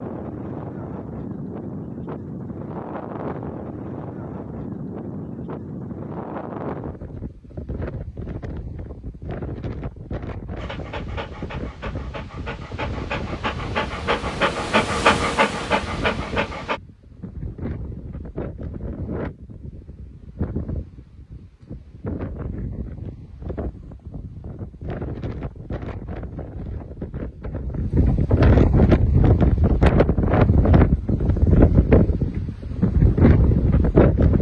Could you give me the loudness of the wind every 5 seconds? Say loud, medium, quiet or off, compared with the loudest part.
quiet, quiet, quiet, quiet, quiet, loud, loud.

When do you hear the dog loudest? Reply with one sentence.
The volume of the dog peaks at 15 seconds.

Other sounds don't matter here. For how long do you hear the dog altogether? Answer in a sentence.
You can hear the dog for 6 seconds altogether.